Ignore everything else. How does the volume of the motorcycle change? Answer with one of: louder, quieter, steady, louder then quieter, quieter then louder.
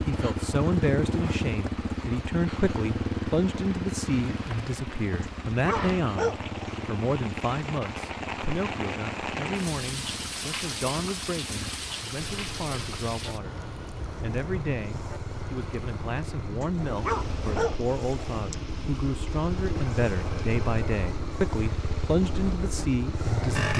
quieter then louder.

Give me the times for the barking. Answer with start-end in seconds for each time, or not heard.
5.2-6.6, 16.6-18.6.